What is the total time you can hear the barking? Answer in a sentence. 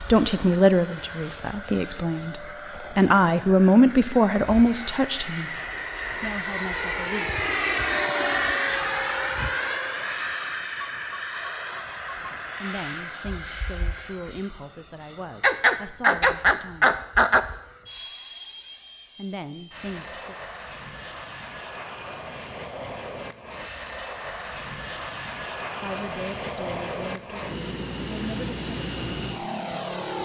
The barking can be heard for 2 seconds in total.